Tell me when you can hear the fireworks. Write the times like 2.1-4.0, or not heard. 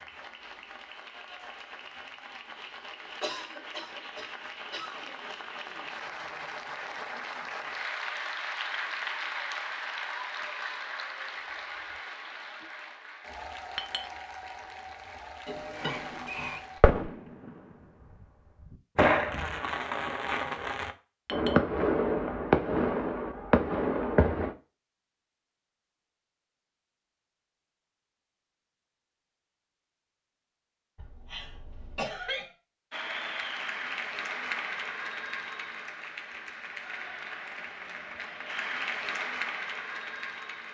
15.7-17.5, 18.7-24.6.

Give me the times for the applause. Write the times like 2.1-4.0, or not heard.
0.0-16.8, 32.9-40.6.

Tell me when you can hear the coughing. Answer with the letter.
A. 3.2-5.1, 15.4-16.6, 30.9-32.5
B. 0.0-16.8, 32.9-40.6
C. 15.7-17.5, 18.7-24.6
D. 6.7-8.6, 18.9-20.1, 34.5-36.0
A.